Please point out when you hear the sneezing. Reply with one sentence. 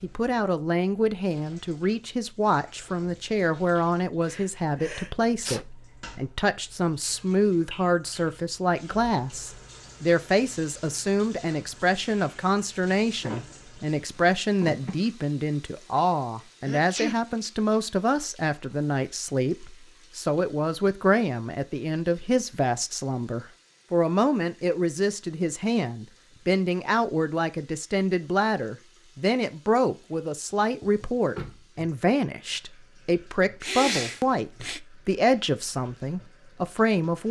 You can hear the sneezing from 4.2 to 5.7 s, from 16.6 to 17.1 s and from 33.6 to 34.8 s.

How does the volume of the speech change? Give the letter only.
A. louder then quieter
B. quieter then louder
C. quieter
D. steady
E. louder
D.